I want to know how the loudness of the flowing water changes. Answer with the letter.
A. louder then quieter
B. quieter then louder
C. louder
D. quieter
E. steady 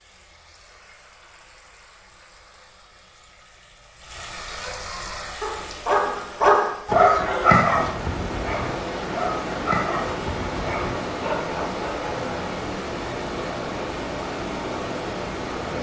C.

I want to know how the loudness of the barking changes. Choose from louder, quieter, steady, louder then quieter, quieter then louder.
louder then quieter.